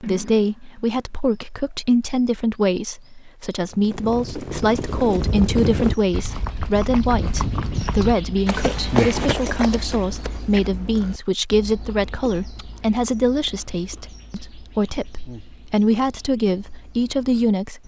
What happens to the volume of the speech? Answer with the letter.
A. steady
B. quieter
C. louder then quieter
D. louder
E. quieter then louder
A.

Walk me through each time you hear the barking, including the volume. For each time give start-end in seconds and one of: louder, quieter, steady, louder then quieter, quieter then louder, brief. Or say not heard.
not heard.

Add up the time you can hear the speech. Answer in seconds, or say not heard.
18 s.